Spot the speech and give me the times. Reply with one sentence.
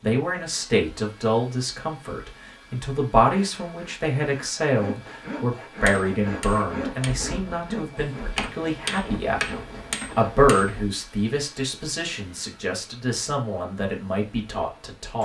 You can hear the speech from 0.0 to 15.1 s.